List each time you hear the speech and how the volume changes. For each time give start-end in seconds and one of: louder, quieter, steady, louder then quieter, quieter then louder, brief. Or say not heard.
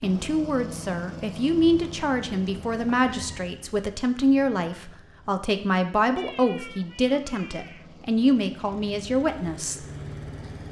0.0-9.8 steady.